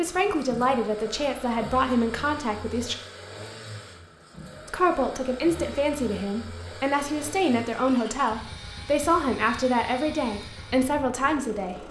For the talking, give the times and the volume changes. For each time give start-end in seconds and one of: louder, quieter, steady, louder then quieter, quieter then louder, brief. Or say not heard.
0.0-3.0 brief
4.7-11.8 steady.